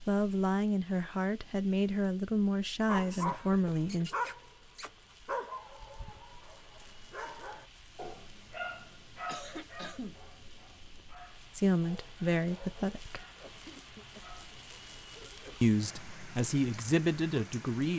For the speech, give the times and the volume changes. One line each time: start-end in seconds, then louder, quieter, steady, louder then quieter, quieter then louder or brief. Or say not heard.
0.1-4.1 steady
11.6-13.2 brief
15.6-17.9 brief.